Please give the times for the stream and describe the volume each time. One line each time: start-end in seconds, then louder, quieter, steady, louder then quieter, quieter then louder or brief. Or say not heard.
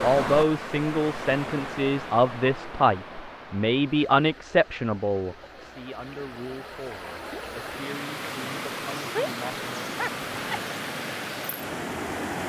0.0-12.4 quieter then louder.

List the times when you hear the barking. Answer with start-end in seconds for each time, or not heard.
9.9-10.7.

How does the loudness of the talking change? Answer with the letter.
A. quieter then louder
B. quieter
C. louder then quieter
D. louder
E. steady
B.